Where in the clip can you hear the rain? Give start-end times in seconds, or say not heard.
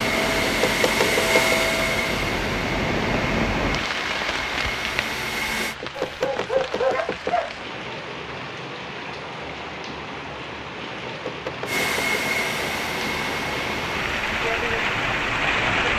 0.0-15.9.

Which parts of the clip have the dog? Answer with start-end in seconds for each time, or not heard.
6.0-7.6.